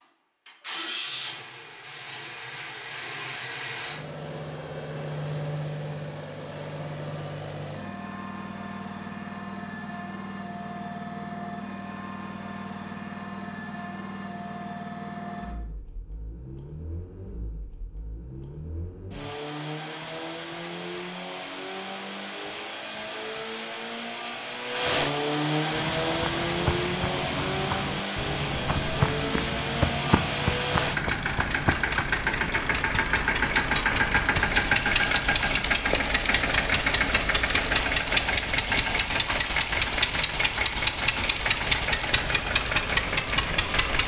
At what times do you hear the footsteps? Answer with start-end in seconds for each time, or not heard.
25.7-36.6.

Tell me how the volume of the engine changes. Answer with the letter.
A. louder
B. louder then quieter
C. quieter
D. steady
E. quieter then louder
A.